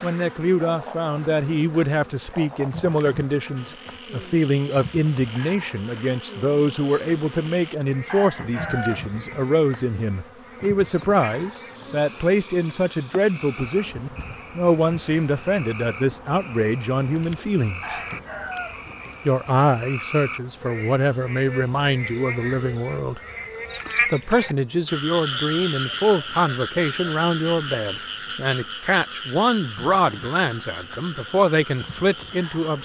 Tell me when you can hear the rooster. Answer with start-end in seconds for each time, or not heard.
8.1-9.4, 17.8-19.2.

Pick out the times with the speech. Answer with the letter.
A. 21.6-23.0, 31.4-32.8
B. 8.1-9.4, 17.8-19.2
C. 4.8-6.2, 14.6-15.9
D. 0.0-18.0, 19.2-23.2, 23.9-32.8
D.